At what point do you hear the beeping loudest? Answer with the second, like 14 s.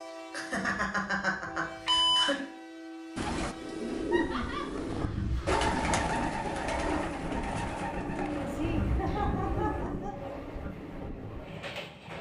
2 s.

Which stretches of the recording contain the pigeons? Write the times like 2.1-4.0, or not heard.
3.1-9.9.